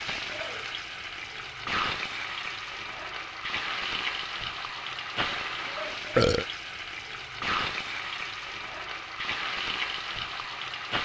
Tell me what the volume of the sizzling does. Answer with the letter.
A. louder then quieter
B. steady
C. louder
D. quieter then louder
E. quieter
B.